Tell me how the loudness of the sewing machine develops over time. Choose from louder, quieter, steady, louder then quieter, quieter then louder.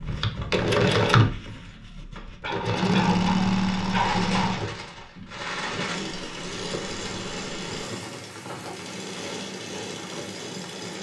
quieter.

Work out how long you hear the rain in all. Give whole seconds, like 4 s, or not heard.
7 s.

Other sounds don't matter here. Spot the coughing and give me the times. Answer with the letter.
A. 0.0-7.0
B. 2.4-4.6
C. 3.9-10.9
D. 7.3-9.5
B.